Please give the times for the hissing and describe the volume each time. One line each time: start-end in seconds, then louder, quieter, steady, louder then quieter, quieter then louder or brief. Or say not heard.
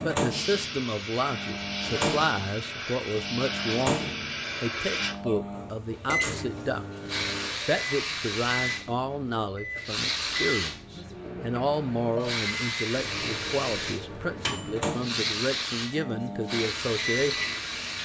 0.1-17.9 steady.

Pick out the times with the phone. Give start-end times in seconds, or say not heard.
not heard.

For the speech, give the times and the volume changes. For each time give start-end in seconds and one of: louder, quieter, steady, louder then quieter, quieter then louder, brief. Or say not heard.
0.0-17.4 steady.